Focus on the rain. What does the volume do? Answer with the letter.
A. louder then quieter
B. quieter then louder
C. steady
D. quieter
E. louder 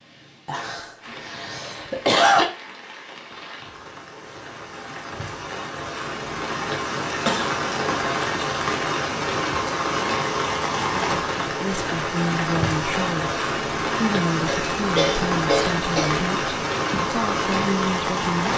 E.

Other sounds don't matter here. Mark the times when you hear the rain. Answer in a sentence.
You can hear the rain from 0.0 to 18.5 s.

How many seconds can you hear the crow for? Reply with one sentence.
You can't hear the crow here.